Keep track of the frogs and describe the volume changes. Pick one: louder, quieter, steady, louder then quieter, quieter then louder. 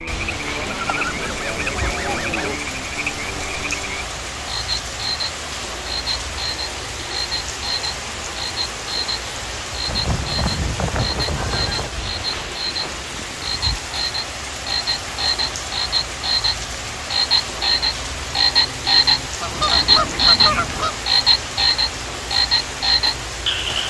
louder.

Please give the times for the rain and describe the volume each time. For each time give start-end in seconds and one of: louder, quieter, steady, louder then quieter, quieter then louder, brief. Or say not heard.
0.0-23.8 steady.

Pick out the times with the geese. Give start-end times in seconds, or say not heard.
0.6-2.5, 9.8-11.9, 19.4-20.9.